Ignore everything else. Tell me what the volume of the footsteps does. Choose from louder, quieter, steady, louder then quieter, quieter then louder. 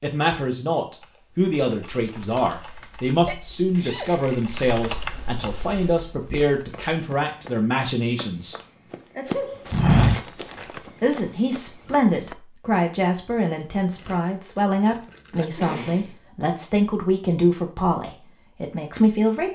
louder then quieter.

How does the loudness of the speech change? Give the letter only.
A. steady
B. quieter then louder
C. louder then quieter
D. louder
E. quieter
A.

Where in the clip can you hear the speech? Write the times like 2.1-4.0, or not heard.
0.0-8.6, 11.0-19.5.